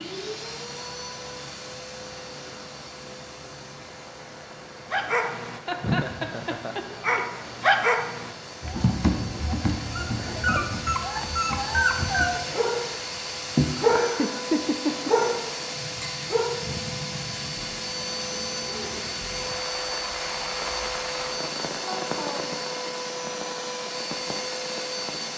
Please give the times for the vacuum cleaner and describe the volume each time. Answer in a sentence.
You can hear the vacuum cleaner from 0.0 to 25.3 s, getting louder.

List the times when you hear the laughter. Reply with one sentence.
You can hear the laughter from 5.8 to 6.8 s, from 14.1 to 15.2 s and from 21.8 to 22.6 s.